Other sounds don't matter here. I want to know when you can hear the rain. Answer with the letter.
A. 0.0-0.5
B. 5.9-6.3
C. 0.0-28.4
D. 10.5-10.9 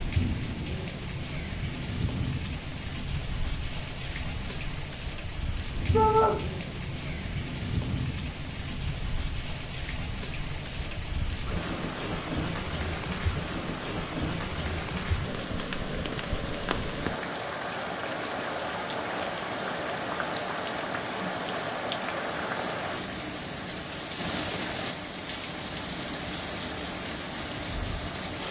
C.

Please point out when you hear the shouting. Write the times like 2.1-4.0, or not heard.
5.9-6.3.